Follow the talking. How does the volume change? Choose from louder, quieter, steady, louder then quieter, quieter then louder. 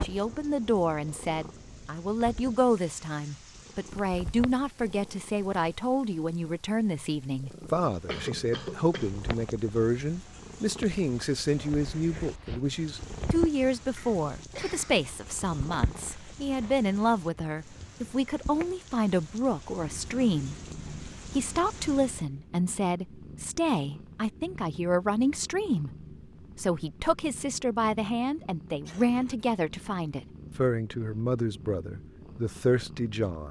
steady.